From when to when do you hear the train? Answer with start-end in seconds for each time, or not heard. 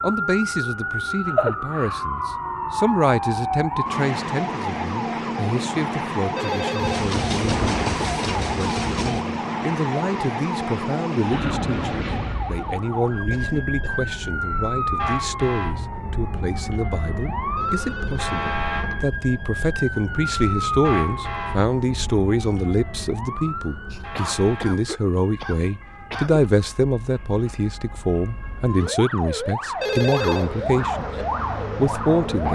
6.8-9.2.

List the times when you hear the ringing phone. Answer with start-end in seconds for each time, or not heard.
6.3-7.0, 17.6-18.9, 29.8-30.5.